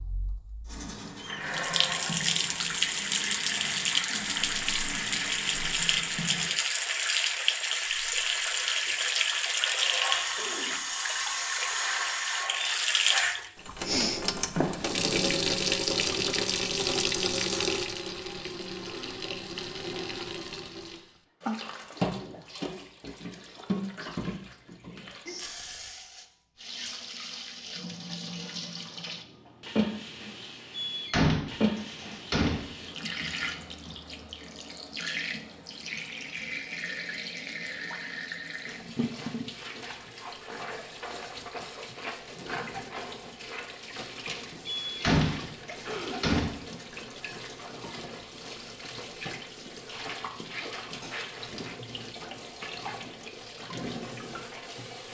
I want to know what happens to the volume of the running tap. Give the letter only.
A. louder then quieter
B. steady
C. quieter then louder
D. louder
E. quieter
E.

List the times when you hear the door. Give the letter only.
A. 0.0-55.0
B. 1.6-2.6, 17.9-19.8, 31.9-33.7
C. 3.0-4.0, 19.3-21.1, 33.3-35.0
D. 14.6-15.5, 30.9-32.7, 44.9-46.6
D.